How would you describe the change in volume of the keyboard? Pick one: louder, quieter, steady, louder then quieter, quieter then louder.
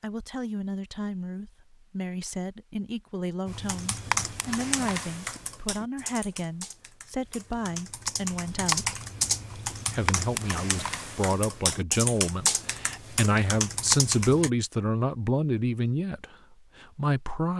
quieter then louder.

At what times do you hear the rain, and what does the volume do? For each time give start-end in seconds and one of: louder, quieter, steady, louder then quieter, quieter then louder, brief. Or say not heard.
not heard.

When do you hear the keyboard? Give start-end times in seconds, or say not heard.
3.5-14.5.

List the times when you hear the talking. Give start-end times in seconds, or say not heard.
0.0-8.9, 9.8-17.5.